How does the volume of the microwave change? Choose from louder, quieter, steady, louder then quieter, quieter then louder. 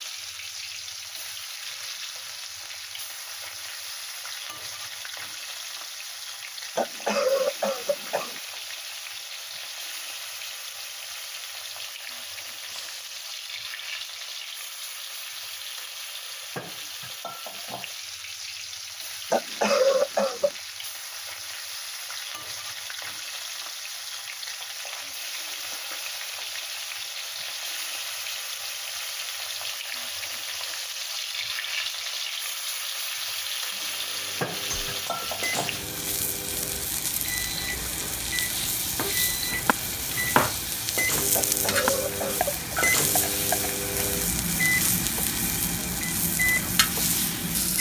louder.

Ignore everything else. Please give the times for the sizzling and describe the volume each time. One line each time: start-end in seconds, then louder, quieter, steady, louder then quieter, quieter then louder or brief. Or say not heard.
0.0-47.7 louder.